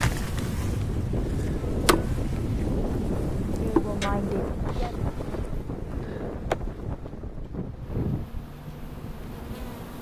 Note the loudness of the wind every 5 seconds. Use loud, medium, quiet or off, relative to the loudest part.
loud, medium.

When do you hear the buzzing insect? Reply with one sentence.
You can hear the buzzing insect from 0.0 to 9.9 s.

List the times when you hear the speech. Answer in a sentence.
You can hear the speech from 3.5 to 5.0 s.